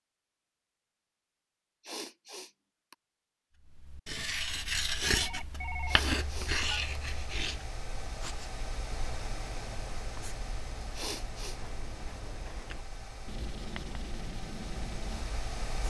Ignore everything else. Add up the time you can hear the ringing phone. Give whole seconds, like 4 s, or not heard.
2 s.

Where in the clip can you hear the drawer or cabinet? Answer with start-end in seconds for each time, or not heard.
not heard.